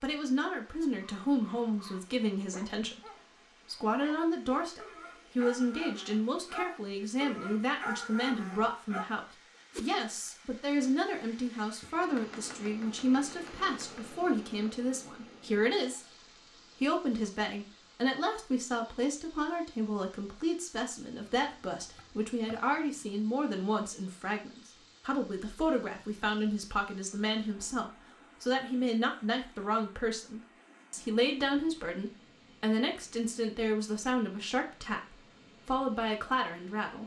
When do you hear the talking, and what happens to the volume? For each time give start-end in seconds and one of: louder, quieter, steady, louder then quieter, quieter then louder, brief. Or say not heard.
0.0-16.0 steady
16.6-37.0 steady.